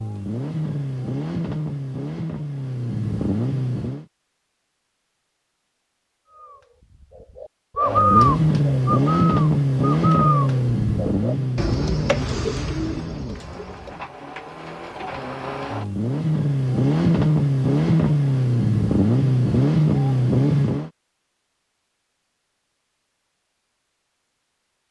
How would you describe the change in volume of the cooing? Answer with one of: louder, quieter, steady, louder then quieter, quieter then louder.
quieter.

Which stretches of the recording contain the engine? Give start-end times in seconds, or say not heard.
0.0-4.0, 7.8-20.9.